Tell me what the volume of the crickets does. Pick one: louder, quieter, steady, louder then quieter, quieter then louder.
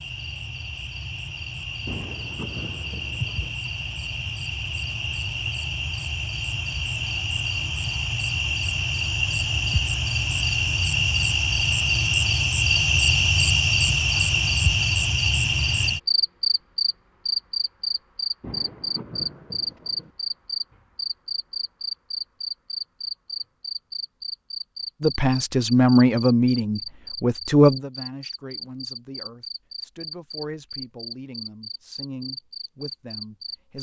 louder then quieter.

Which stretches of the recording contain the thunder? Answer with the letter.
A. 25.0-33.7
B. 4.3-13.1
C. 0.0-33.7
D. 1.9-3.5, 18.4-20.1
D.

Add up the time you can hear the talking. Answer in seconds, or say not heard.
9 s.